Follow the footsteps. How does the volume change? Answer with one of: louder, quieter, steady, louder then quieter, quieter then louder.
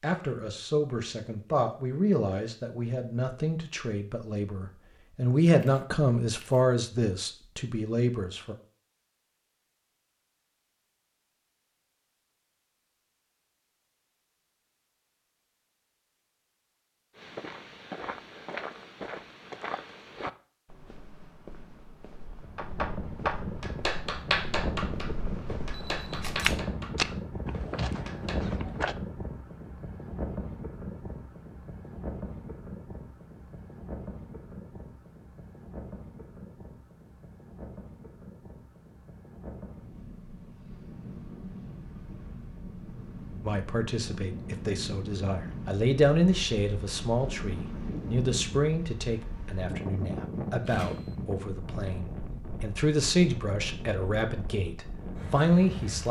quieter then louder.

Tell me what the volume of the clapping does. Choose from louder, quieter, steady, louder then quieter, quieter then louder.
quieter.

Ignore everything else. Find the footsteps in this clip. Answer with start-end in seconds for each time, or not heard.
17.1-28.9.